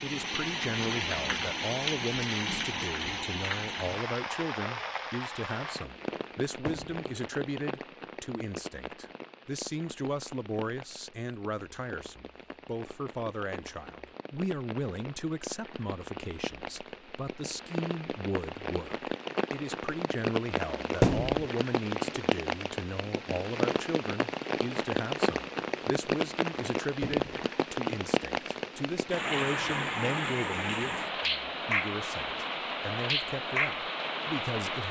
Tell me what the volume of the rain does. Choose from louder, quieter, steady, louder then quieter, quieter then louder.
quieter then louder.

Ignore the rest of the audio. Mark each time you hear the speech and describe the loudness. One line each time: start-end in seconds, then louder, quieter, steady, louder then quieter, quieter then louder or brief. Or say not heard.
0.0-34.8 steady.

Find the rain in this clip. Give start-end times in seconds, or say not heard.
0.0-34.8.